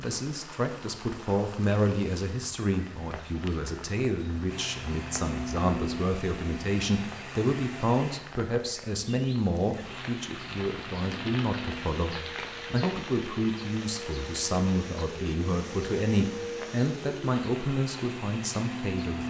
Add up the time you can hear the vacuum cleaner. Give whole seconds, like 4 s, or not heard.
13 s.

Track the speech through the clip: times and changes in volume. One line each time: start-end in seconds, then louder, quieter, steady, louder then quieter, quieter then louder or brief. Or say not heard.
0.0-19.2 steady.